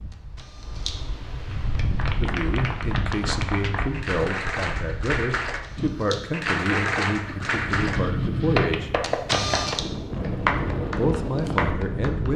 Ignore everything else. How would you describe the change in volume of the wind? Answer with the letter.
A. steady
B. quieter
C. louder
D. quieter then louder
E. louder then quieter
D.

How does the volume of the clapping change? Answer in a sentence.
The volume of the clapping goes up.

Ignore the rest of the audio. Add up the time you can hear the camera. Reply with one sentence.
You can hear the camera for 2 seconds altogether.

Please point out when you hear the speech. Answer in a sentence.
You can hear the speech from 2.2 to 8.9 s and from 10.8 to 12.3 s.